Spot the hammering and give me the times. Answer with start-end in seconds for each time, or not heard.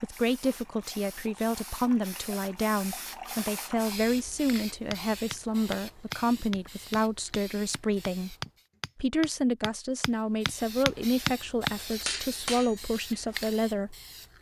4.9-13.3.